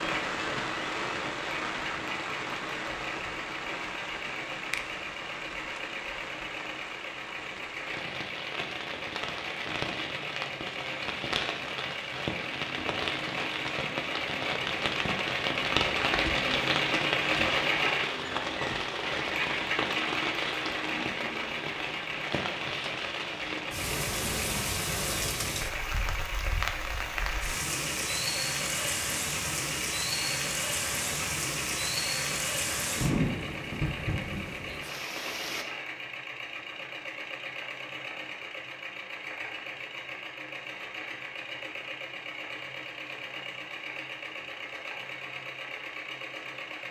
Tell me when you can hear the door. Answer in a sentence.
You can't hear the door here.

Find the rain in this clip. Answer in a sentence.
The rain can be heard from 0.0 to 35.6 s.